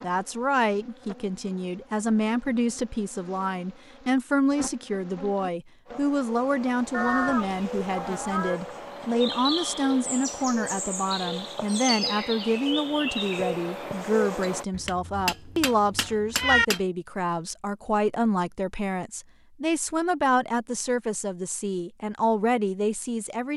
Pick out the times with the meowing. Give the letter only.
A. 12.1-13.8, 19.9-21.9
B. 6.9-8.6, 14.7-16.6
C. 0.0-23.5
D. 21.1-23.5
B.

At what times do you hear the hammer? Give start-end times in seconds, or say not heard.
14.4-16.8.